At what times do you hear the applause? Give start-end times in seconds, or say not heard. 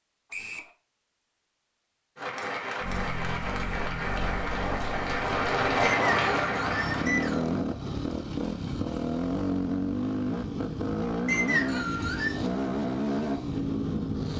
2.1-7.6.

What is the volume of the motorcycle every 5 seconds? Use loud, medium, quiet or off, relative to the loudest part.
medium, loud, loud.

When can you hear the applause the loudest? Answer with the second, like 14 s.
6 s.